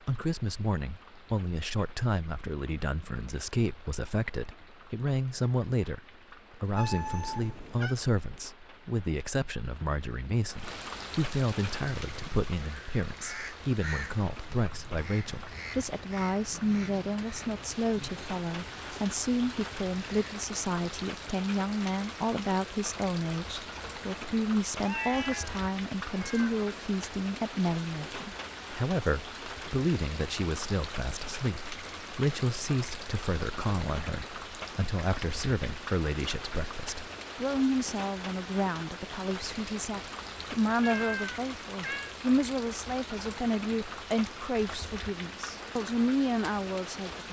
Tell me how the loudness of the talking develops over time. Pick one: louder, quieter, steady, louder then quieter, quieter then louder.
steady.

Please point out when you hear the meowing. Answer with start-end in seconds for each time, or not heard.
6.8-8.0, 24.8-26.6, 40.8-42.1.